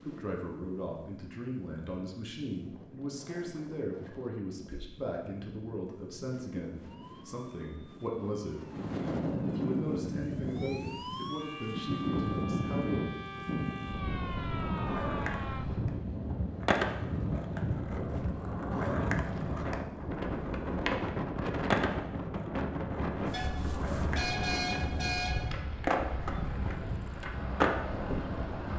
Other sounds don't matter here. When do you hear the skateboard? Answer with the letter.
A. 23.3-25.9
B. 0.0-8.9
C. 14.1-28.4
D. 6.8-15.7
C.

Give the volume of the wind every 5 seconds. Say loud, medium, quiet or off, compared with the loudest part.
quiet, loud, loud, loud, loud, loud.